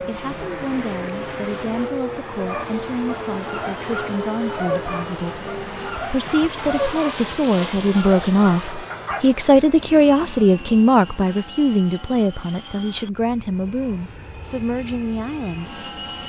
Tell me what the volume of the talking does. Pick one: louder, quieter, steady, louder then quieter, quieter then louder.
louder then quieter.